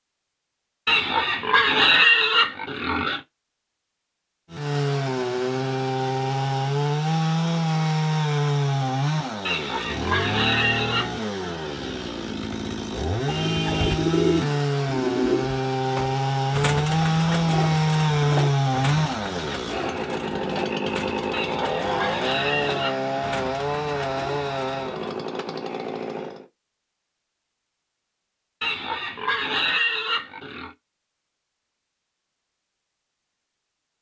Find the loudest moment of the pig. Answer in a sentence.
The loudest moment of the pig is at 2 seconds.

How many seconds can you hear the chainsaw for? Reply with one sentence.
The chainsaw can be heard for 22 seconds in total.